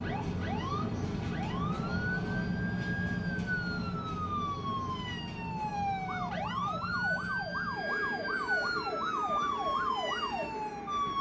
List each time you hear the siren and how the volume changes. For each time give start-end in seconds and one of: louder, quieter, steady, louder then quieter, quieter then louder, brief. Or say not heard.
0.0-11.1 louder.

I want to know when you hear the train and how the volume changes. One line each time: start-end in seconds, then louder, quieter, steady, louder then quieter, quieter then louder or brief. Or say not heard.
0.0-11.1 quieter.